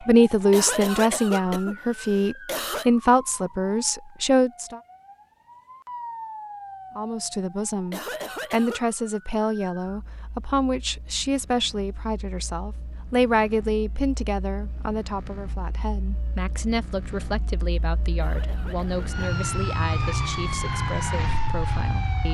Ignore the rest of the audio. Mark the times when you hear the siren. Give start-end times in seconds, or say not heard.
0.0-22.2.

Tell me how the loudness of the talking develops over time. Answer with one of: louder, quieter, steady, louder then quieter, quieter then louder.
quieter.